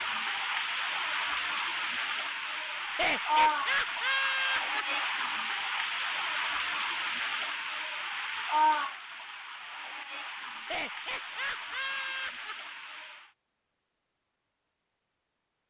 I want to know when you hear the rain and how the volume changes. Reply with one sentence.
The rain can be heard from 0.0 to 13.3 s, getting quieter.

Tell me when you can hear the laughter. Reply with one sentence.
The laughter can be heard from 2.9 to 4.8 s and from 10.6 to 12.6 s.